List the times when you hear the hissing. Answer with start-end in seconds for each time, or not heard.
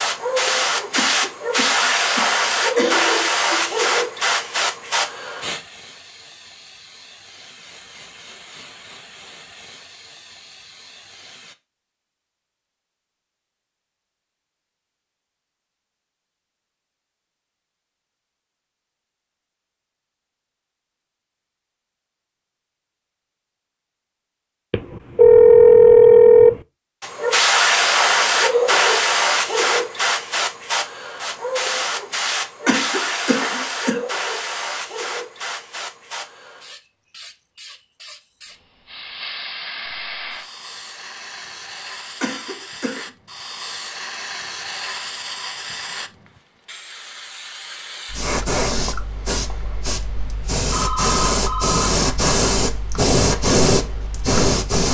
0.0-11.6, 27.0-54.8.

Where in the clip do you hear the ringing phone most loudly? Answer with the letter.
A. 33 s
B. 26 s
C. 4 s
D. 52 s
B.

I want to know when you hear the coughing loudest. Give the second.
33 s.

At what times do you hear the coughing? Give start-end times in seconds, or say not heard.
0.9-3.1, 32.6-34.0, 42.2-43.1.